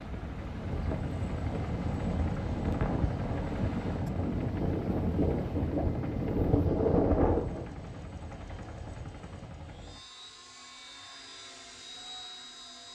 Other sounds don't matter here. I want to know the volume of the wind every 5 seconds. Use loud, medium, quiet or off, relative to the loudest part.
medium, loud, off.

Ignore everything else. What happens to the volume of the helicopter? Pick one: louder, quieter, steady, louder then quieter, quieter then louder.
quieter.